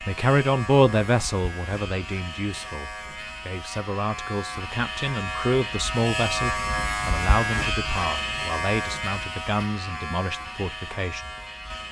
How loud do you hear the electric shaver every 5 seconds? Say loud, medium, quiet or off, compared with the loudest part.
medium, loud, medium.